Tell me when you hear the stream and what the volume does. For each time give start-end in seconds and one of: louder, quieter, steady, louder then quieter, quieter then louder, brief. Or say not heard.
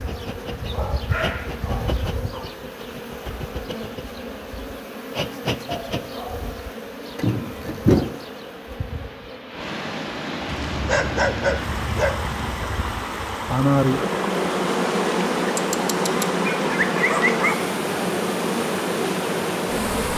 0.2-20.1 louder.